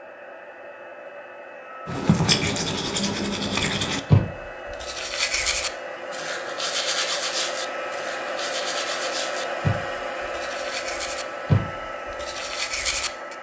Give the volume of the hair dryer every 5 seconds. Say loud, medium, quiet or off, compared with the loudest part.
medium, loud, loud.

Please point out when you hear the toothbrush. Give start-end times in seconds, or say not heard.
1.9-13.3.